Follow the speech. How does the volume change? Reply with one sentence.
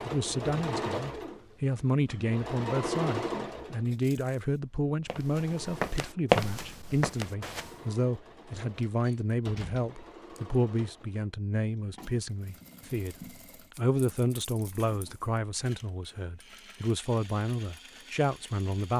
The volume of the speech stays about the same.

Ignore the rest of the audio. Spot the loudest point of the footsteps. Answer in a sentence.
The volume of the footsteps peaks at 6 seconds.